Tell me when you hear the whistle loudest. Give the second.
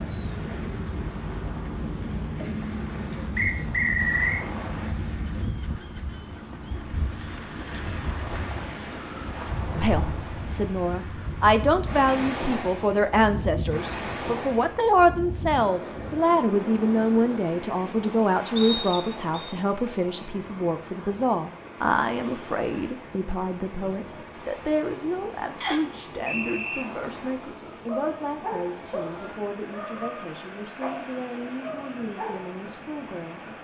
4 s.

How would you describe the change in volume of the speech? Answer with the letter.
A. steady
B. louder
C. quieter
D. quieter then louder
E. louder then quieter
C.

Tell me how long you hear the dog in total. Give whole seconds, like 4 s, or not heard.
5 s.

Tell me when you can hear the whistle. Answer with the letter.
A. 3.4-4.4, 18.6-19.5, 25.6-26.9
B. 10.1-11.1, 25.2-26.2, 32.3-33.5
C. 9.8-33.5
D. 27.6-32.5
A.